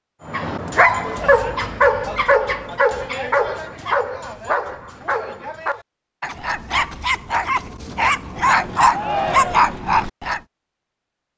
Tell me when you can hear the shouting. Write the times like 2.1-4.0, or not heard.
1.0-1.4, 8.8-9.8.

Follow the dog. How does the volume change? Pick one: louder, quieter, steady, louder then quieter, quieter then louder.
quieter then louder.